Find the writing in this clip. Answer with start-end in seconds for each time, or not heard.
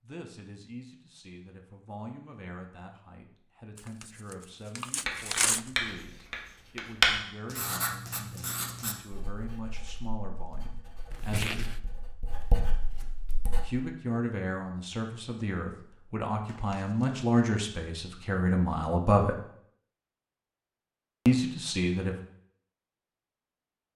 5.0-13.7.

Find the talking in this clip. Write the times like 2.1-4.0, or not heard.
0.0-11.7, 13.5-19.4, 21.2-22.1.